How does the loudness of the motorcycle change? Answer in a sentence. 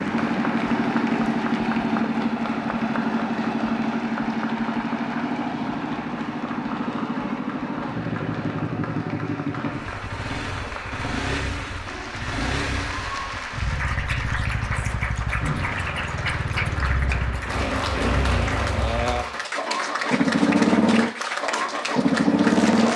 The loudness of the motorcycle goes down, then up.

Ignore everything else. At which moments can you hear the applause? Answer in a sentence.
You can hear the applause from 0.0 to 22.9 s.